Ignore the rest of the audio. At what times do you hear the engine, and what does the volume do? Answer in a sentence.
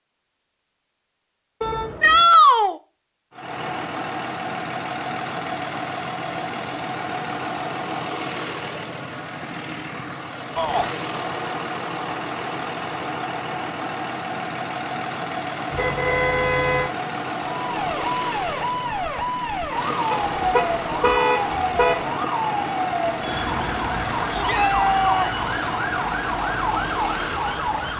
You can hear the engine from 3.3 to 27.9 s, at a steady volume.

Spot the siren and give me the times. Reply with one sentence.
You can hear the siren from 17.6 to 27.9 s.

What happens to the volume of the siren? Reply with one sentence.
The volume of the siren stays about the same.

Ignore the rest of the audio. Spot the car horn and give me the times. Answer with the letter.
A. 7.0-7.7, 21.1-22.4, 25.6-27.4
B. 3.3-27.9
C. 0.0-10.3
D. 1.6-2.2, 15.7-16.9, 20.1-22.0
D.